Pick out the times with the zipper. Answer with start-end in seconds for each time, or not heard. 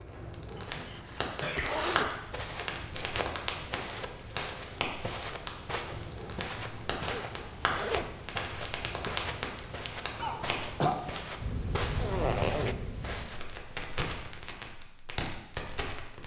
0.7-2.1, 7.0-8.2, 11.9-12.8.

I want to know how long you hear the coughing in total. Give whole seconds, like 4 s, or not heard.
2 s.